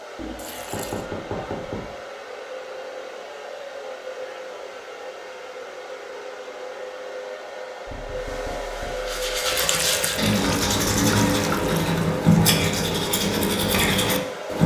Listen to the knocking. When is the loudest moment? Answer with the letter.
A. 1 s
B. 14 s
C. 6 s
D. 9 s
A.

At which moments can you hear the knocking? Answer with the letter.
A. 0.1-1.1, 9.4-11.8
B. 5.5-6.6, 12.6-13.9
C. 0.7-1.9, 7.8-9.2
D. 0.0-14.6
C.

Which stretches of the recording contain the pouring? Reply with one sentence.
You can hear the pouring from 0.1 to 1.1 s and from 9.4 to 11.8 s.